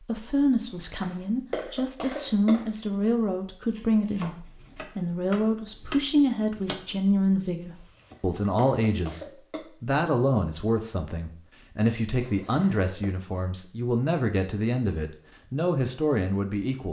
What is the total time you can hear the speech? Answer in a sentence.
You can hear the speech for 17 seconds altogether.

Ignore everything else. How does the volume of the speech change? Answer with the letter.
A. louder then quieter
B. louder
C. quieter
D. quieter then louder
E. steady
E.